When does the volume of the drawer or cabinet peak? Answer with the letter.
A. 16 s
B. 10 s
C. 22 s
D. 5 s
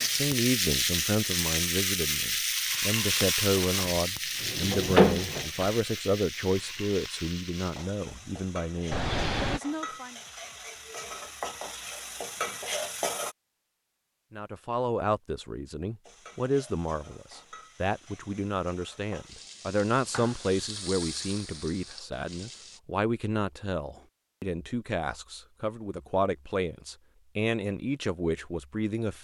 D.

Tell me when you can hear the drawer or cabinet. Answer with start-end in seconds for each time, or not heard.
3.5-5.7.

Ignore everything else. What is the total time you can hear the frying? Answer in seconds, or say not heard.
20 s.